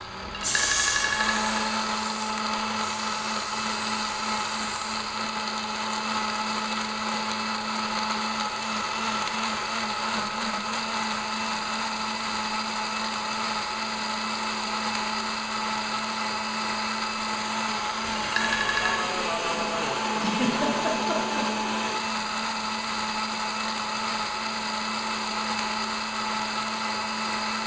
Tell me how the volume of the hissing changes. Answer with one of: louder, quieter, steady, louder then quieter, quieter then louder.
quieter.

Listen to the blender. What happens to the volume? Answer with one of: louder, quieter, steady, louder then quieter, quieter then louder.
steady.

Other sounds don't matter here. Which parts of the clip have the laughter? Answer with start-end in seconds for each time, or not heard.
20.1-21.4.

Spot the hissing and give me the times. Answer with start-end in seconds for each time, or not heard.
0.0-5.2.